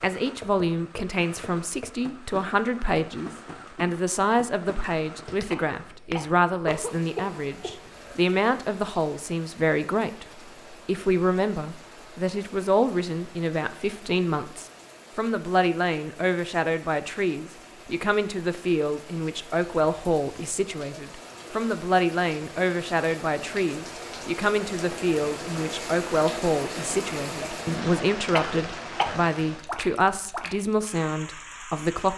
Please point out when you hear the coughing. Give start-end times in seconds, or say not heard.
5.5-8.2, 28.4-29.2.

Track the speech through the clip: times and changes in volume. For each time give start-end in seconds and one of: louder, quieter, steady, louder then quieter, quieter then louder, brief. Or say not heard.
0.0-10.2 steady
10.8-32.1 steady.